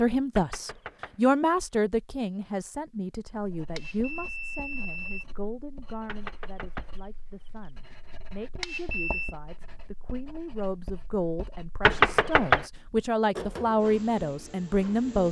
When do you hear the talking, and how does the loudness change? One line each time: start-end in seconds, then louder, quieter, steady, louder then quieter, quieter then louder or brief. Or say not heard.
0.0-15.2 quieter then louder.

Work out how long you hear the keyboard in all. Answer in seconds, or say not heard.
not heard.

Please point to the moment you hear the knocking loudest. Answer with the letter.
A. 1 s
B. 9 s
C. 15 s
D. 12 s
D.